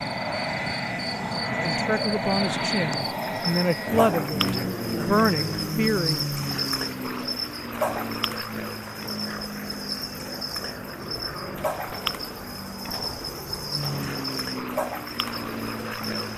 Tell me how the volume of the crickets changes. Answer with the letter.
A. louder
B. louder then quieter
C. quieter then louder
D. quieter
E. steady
E.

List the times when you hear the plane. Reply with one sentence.
You can hear the plane from 0.0 to 16.3 s.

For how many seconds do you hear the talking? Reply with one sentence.
The talking can be heard for 5 seconds in total.